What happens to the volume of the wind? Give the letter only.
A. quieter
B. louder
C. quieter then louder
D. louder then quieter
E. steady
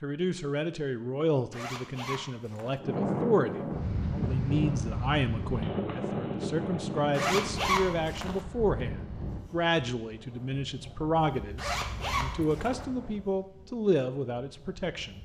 A.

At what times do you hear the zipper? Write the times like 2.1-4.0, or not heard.
1.5-2.8, 7.1-8.4, 11.6-12.8.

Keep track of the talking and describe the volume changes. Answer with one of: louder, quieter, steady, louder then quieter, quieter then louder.
steady.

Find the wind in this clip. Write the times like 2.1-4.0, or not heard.
2.8-15.2.